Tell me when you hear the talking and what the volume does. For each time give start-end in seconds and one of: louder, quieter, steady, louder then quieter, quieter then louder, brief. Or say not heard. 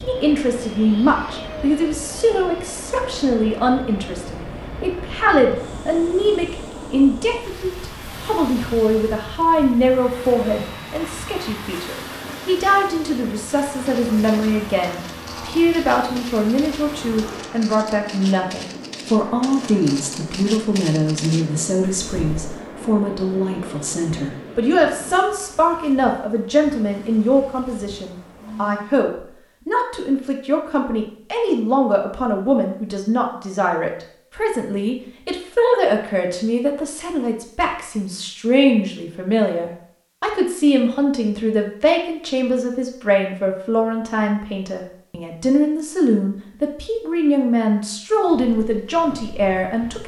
0.0-50.0 steady.